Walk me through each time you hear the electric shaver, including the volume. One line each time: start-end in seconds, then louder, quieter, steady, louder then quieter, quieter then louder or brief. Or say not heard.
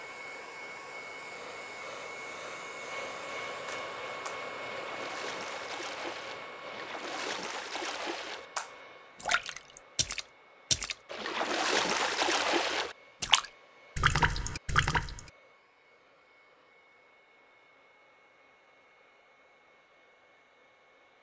not heard.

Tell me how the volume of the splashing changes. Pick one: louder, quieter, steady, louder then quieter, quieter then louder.
louder.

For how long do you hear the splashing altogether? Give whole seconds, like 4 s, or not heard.
12 s.